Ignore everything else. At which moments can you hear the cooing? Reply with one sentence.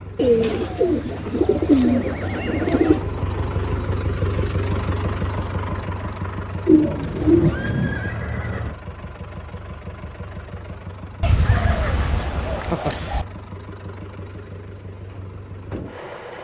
The cooing can be heard from 0.1 to 3.1 s, from 6.7 to 8.0 s and from 11.2 to 13.2 s.